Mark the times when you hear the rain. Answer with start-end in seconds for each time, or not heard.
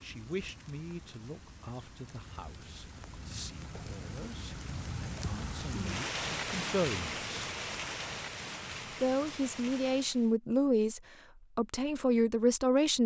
0.0-10.3.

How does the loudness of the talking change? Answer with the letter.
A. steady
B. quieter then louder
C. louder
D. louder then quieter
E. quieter
B.